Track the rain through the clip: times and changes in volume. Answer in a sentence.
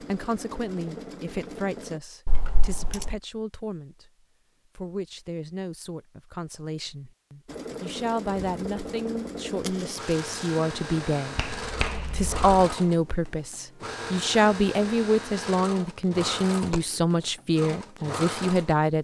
You can't hear the rain here.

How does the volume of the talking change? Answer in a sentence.
The loudness of the talking goes up.